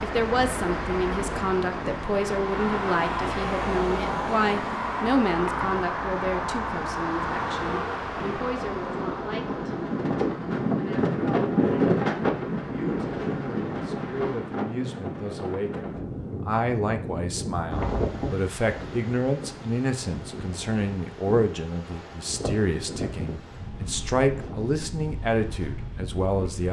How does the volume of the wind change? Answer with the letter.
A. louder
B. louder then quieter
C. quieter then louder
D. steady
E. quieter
B.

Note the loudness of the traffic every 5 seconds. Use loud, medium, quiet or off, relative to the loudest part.
loud, loud, quiet, off, off, off.